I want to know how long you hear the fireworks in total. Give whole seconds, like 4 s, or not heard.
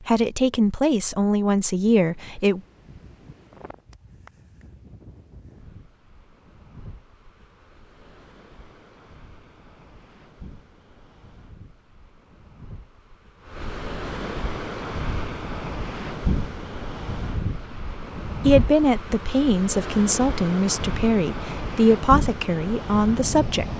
not heard.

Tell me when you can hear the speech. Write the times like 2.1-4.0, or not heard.
0.1-2.6, 18.4-23.7.